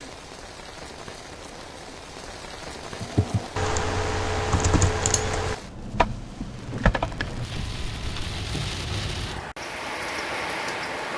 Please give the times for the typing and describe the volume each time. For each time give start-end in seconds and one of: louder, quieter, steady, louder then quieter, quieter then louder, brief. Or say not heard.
3.0-8.4 quieter.